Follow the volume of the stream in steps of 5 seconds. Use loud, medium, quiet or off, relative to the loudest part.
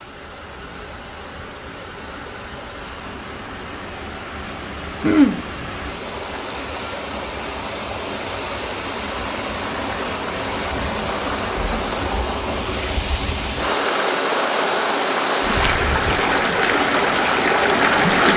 quiet, medium, medium, loud.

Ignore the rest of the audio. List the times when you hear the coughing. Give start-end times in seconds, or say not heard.
5.0-5.4.